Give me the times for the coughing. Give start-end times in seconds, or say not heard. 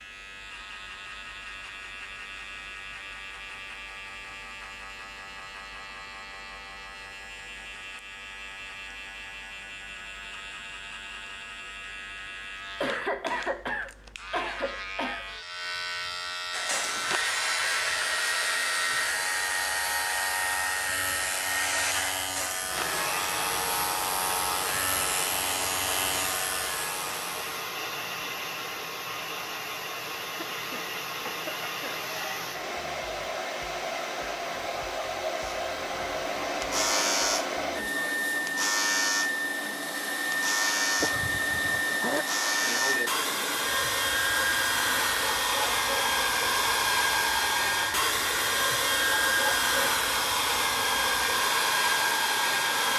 12.8-15.2, 30.3-32.0, 41.0-42.3.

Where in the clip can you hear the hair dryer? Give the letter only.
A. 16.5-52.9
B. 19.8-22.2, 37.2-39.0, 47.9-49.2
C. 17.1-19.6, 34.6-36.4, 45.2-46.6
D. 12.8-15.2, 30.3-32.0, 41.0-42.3
A.